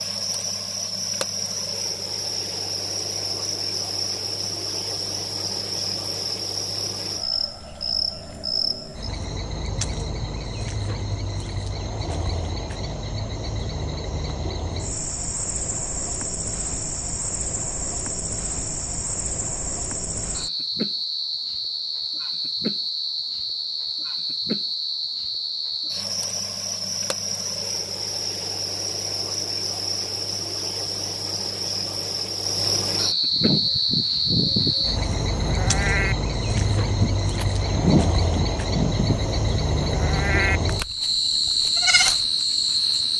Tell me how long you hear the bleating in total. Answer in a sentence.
You can hear the bleating for 9 seconds altogether.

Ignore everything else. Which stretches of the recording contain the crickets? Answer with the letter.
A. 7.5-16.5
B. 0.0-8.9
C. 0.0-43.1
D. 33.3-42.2
C.